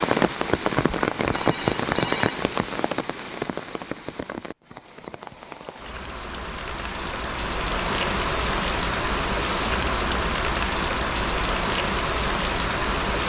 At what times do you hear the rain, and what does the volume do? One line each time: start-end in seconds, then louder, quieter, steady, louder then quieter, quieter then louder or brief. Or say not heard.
0.0-13.2 quieter then louder.